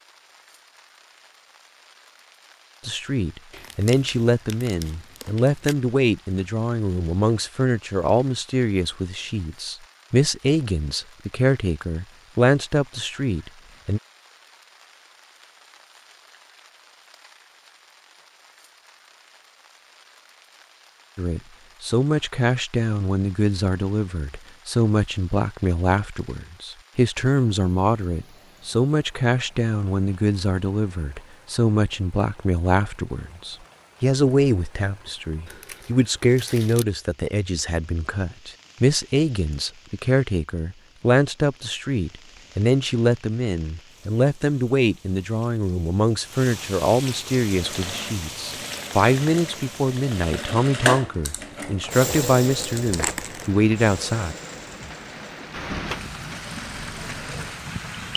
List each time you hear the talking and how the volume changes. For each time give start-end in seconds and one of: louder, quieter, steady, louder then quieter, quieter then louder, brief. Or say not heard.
2.9-14.0 steady
21.1-54.4 steady.